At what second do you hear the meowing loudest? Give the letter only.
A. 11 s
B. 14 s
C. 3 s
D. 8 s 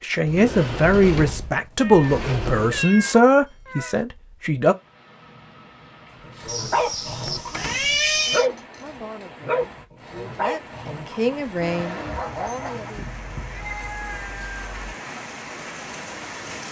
D.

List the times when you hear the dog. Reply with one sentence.
You can hear the dog from 6.2 to 12.9 s.